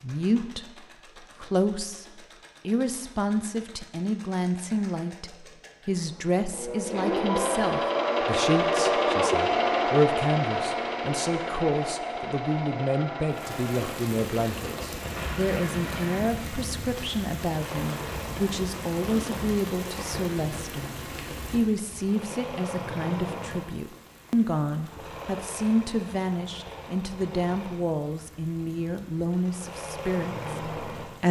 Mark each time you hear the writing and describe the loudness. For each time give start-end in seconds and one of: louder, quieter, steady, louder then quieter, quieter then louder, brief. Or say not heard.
not heard.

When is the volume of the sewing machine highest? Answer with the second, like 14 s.
9 s.